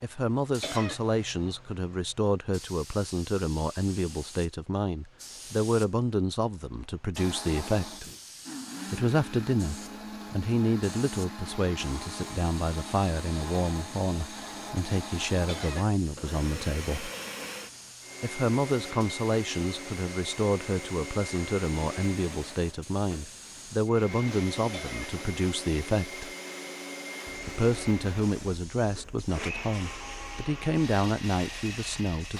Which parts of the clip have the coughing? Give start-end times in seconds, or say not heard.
0.6-1.0, 15.4-16.0, 24.7-25.2.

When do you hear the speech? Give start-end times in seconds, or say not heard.
0.0-8.1, 8.9-17.1, 18.2-26.3, 27.4-32.3.